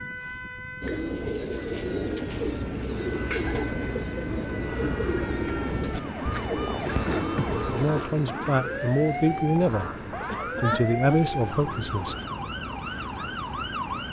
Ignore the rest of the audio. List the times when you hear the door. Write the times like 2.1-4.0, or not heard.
not heard.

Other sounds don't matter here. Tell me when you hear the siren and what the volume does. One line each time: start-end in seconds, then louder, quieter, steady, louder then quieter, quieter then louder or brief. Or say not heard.
0.0-14.0 louder.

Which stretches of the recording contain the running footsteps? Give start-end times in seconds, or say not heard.
not heard.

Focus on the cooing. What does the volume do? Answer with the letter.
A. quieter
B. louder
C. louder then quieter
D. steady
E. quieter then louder
A.